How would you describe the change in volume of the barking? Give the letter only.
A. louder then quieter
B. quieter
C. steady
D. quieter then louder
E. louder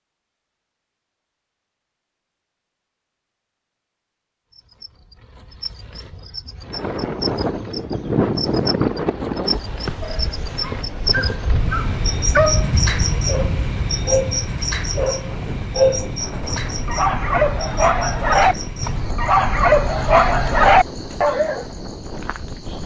E.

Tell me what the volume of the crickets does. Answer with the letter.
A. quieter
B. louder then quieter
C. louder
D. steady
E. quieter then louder
B.